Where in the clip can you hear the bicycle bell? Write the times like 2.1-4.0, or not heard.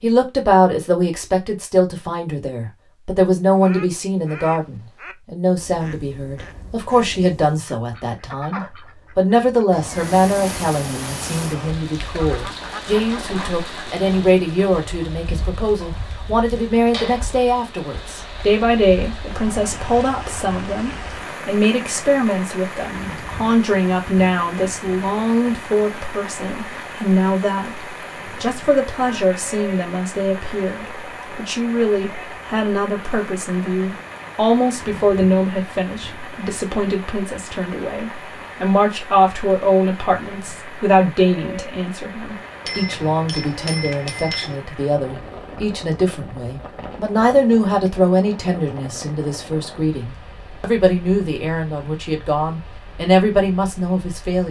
42.6-44.6.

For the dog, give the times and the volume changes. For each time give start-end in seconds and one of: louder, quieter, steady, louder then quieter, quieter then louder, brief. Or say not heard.
not heard.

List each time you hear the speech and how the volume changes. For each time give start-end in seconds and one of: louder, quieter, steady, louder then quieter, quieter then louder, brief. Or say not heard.
0.0-54.4 steady.